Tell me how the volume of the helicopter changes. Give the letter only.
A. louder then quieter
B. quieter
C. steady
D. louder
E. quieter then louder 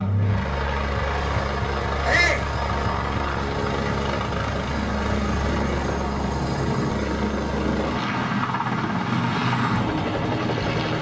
C.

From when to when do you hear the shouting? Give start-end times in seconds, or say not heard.
2.0-2.5.